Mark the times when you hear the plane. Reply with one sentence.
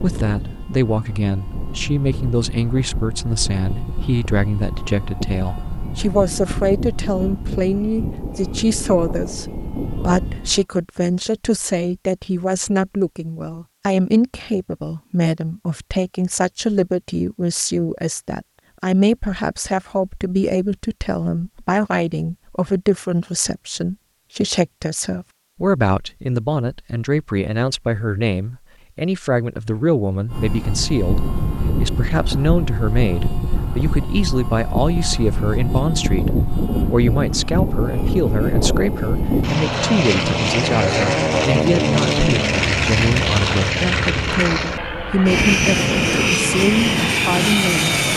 The plane can be heard from 0.0 to 10.7 s and from 30.3 to 48.1 s.